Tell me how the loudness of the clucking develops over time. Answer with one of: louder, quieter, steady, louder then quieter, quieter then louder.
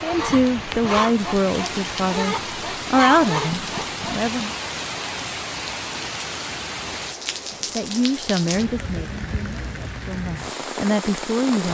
quieter then louder.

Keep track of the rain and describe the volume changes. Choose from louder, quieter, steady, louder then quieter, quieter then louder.
steady.